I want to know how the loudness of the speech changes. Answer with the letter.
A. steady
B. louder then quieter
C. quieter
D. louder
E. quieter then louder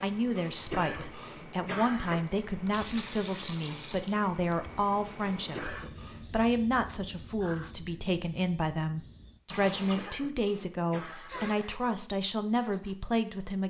A.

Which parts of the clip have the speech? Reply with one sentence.
The speech can be heard from 0.0 to 13.6 s.